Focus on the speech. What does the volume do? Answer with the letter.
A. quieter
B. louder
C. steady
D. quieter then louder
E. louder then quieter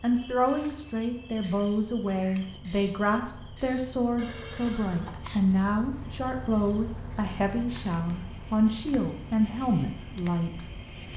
C.